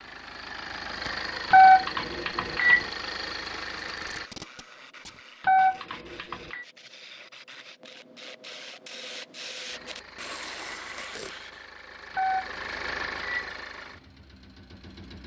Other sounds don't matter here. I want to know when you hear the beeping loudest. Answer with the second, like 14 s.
2 s.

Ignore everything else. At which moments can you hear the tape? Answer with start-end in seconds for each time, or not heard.
3.8-5.2, 10.3-11.3.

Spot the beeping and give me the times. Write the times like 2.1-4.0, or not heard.
1.5-2.9, 5.4-6.7, 12.1-13.5.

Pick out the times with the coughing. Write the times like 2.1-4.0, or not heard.
not heard.